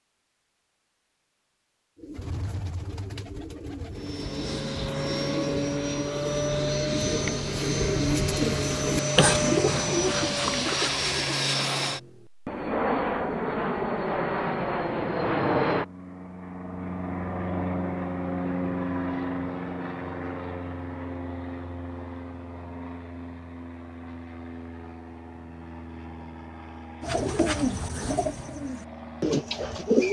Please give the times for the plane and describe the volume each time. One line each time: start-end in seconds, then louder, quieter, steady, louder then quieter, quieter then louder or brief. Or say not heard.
3.9-30.0 quieter.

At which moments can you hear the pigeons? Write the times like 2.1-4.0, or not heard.
1.9-11.3, 27.0-30.0.